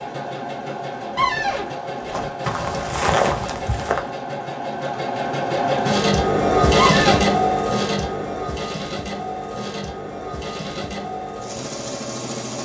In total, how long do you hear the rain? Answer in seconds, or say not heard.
not heard.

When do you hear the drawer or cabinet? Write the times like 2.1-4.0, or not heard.
1.1-1.7, 6.8-7.3.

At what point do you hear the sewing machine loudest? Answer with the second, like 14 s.
7 s.